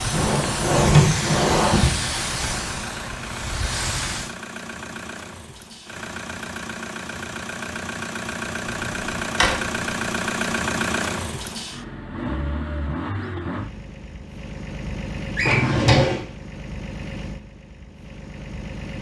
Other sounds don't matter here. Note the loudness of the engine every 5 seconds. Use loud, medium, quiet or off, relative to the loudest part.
medium, loud, loud, medium.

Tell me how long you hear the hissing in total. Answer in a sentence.
The hissing can be heard for 4 seconds in total.